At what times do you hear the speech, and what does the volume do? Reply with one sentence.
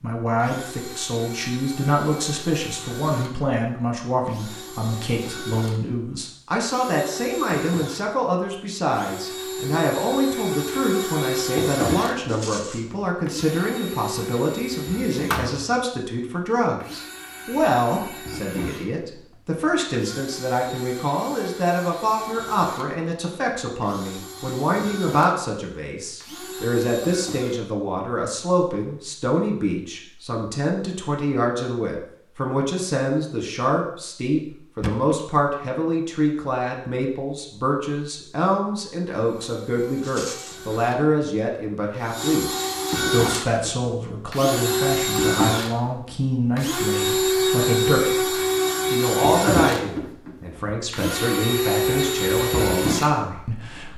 The speech can be heard from 0.0 to 53.9 s, at a steady volume.